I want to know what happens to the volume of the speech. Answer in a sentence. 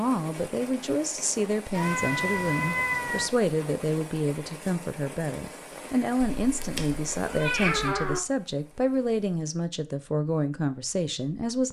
The volume of the speech stays about the same.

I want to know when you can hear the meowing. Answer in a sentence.
The meowing can be heard from 1.7 to 3.3 s and from 6.4 to 8.2 s.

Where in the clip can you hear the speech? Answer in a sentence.
The speech can be heard from 0.0 to 11.6 s.